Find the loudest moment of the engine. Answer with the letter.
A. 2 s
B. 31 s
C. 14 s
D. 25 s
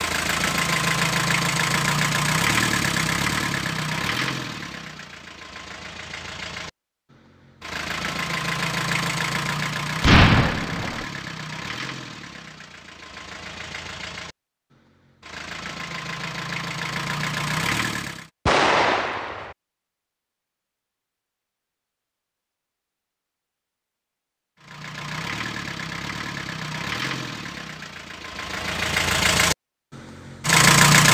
B.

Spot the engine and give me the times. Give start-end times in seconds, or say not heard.
0.0-18.2, 24.6-31.0.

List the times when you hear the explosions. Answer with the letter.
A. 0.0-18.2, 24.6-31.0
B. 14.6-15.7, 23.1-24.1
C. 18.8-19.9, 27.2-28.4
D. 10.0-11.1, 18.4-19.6
D.